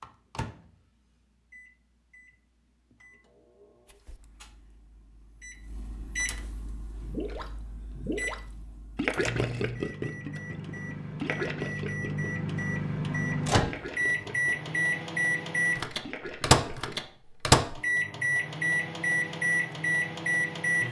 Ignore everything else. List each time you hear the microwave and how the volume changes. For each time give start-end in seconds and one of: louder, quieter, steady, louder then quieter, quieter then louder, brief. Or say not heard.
0.0-20.8 louder.